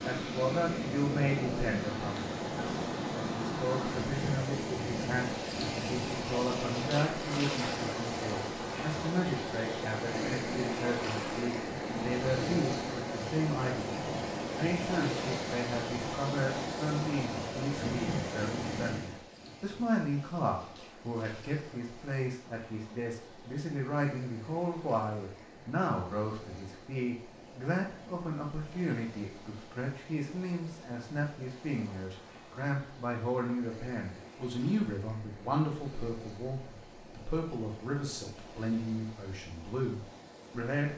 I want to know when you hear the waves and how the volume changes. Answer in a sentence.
You can hear the waves from 0.0 to 40.9 s, getting quieter.